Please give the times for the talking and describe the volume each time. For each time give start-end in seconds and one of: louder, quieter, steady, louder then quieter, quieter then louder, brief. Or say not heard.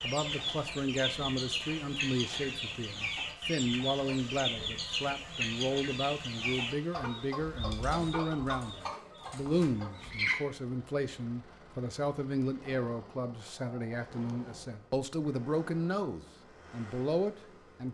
0.0-17.8 steady.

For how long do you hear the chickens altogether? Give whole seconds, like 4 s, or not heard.
10 s.